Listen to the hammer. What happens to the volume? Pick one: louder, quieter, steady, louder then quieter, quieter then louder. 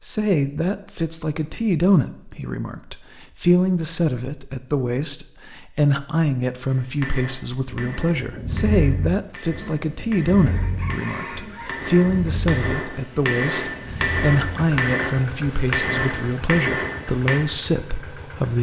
louder.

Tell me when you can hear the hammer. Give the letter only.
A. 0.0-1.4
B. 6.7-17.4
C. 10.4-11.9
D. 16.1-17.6
B.